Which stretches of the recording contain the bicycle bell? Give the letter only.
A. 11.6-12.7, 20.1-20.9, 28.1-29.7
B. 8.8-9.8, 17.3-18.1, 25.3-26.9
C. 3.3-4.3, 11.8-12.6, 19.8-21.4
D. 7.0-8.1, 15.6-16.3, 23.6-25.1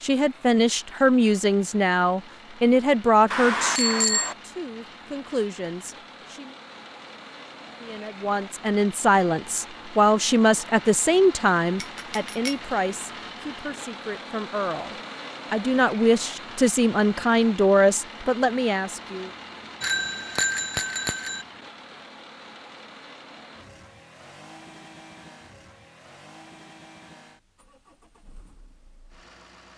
C.